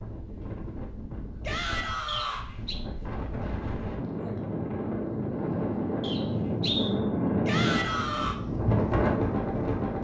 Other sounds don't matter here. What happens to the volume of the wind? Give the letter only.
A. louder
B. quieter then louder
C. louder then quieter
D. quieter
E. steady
A.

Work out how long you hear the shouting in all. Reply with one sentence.
The shouting can be heard for 2 seconds in total.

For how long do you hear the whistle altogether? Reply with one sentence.
The whistle can be heard for 2 seconds in total.